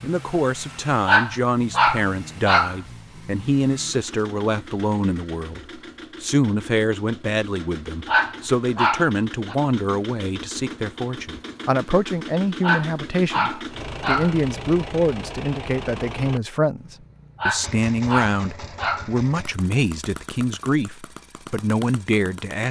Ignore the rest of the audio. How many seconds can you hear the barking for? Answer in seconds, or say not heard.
7 s.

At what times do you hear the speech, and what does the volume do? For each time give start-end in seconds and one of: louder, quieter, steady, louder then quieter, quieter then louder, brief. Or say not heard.
0.0-22.6 steady.